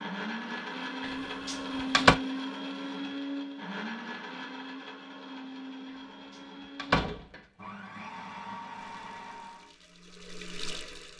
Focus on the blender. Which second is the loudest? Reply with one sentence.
The volume of the blender peaks at 2 seconds.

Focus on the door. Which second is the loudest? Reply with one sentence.
The loudest moment of the door is at 2 seconds.